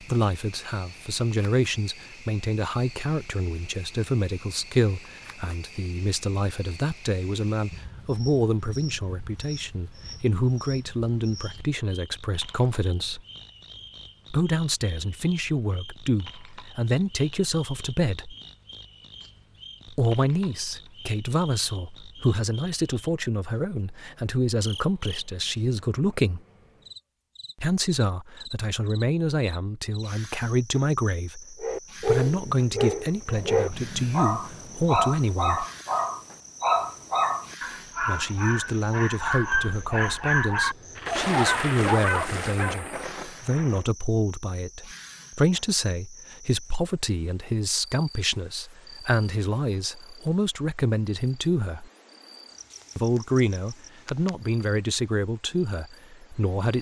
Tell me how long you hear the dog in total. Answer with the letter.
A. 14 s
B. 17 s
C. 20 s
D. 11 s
D.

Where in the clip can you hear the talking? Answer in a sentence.
You can hear the talking from 0.0 to 13.2 s, from 14.3 to 18.4 s, from 19.9 to 26.4 s, from 27.6 to 35.6 s, from 38.0 to 51.9 s and from 53.0 to 56.7 s.